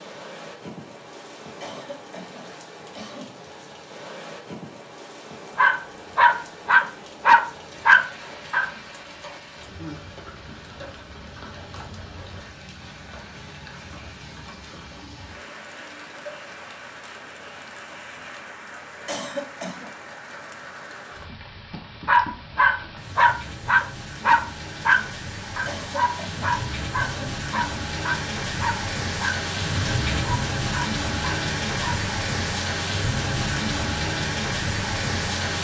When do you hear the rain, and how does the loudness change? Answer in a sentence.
You can hear the rain from 0.0 to 35.5 s, getting louder.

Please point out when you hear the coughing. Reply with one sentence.
You can hear the coughing from 1.6 to 3.4 s, from 19.1 to 19.9 s and from 25.6 to 27.4 s.